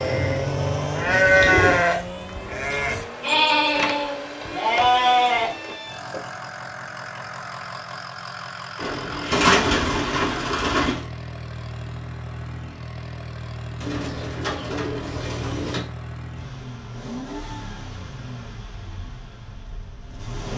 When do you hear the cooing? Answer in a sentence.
The cooing can be heard from 0.0 to 1.9 s, from 8.8 to 11.1 s and from 13.8 to 15.8 s.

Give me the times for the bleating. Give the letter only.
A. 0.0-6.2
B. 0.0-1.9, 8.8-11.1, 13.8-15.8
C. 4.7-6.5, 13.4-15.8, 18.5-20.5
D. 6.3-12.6
A.